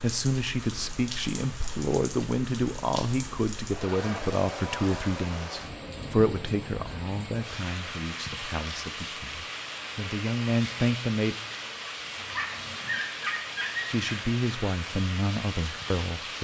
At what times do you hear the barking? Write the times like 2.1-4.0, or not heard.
12.2-14.2.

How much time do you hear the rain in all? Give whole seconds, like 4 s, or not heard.
16 s.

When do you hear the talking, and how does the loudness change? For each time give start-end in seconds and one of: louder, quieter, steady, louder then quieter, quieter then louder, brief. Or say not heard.
0.0-11.3 quieter then louder
13.9-16.3 brief.